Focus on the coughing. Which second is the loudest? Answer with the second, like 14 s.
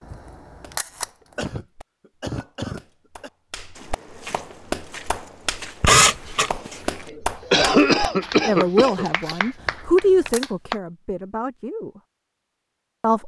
8 s.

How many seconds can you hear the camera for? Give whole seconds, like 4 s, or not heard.
3 s.